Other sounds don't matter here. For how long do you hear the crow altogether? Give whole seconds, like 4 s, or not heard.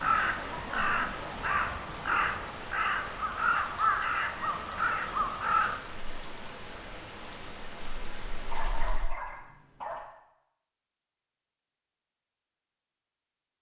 6 s.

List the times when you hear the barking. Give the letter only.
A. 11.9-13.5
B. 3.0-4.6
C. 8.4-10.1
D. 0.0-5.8
C.